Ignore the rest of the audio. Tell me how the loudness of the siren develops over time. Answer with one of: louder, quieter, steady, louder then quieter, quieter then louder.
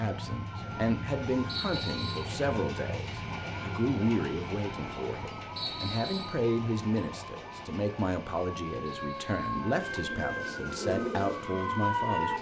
louder.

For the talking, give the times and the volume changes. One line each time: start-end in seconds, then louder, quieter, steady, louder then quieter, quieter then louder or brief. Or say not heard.
0.0-12.3 steady.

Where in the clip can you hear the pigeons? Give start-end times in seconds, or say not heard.
9.7-12.3.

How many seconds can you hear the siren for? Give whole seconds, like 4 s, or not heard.
12 s.